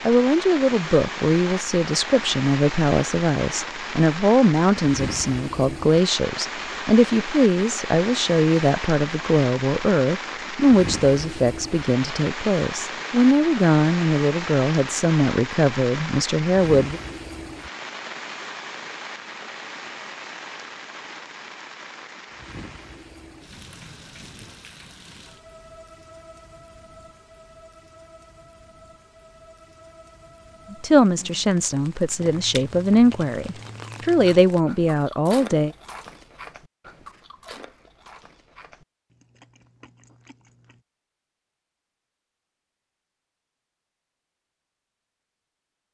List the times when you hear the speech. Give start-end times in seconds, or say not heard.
0.1-17.0, 30.7-35.7.